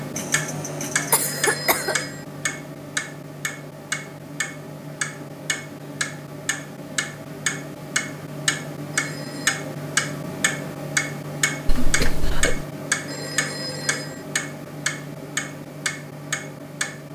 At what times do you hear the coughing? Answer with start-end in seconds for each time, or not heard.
0.1-1.9, 11.7-12.7.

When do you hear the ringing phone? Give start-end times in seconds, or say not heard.
1.1-2.2, 8.9-9.6, 13.1-14.2.